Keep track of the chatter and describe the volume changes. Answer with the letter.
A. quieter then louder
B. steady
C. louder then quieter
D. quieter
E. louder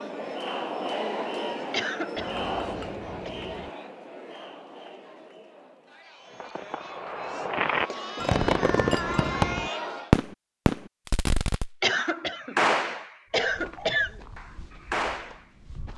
A.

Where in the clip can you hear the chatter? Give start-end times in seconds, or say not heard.
0.0-10.2.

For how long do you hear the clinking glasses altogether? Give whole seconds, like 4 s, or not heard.
3 s.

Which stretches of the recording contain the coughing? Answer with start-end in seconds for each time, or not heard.
1.7-3.3, 7.2-8.3, 11.8-14.1.